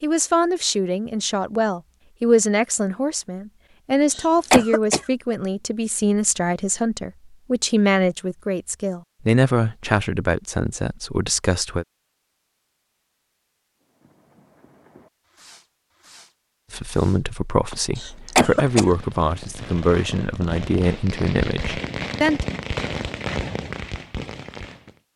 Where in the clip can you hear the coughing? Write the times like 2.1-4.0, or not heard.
4.1-5.0, 17.9-18.9.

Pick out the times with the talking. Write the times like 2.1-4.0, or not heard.
0.0-11.8, 16.7-22.4.